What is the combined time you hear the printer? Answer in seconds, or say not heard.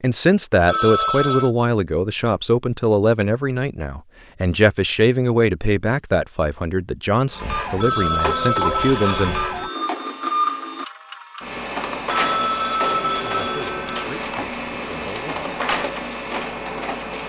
10 s.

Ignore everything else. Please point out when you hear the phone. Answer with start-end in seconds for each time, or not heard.
0.7-1.5, 7.8-9.8, 12.1-14.1.